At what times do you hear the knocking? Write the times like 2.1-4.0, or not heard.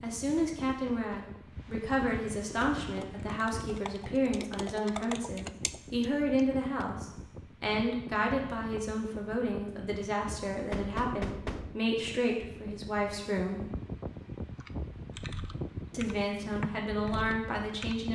0.3-1.4, 10.7-11.8.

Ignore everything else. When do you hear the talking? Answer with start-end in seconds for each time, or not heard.
0.0-13.7, 15.9-18.1.